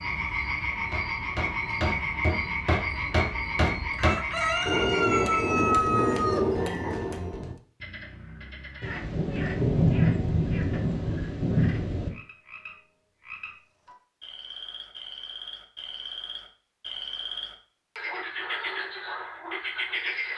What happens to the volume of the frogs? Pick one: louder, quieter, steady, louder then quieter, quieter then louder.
quieter then louder.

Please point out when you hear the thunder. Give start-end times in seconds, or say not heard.
8.8-12.1.